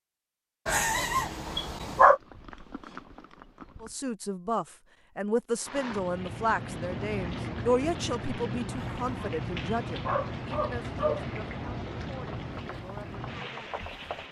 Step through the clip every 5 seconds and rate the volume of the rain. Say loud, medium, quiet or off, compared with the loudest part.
off, loud, loud.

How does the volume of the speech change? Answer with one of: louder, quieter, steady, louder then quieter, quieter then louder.
quieter.